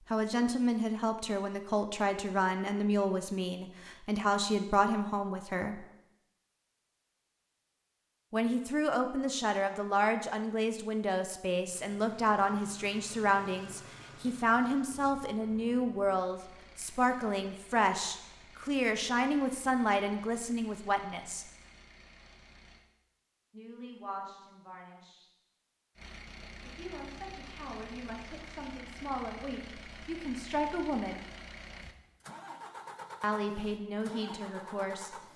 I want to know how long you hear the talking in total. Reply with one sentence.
The talking can be heard for 27 seconds in total.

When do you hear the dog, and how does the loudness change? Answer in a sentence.
You can't hear the dog here.